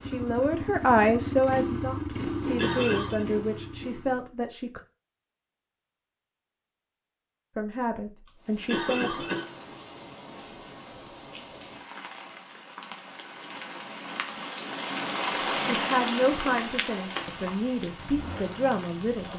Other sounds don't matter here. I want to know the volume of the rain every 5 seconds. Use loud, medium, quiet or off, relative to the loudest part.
off, quiet, medium, loud.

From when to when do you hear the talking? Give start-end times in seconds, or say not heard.
0.0-4.8, 7.5-9.2, 15.7-19.3.